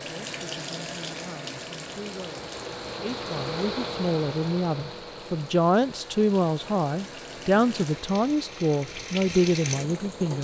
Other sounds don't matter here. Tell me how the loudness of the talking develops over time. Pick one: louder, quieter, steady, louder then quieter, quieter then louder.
louder.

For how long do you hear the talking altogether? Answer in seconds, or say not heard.
10 s.